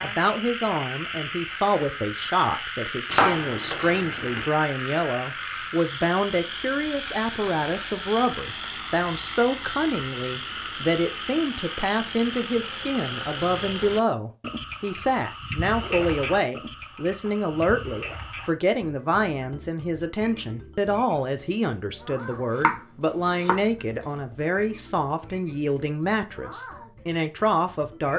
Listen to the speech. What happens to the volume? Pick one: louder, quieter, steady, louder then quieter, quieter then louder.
steady.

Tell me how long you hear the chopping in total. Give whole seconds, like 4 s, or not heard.
2 s.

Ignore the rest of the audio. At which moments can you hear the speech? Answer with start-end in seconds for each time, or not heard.
0.0-28.1.